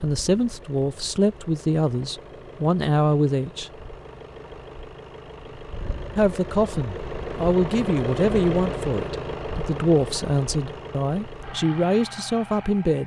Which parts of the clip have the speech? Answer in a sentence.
The speech can be heard from 0.0 to 3.7 s and from 6.2 to 13.0 s.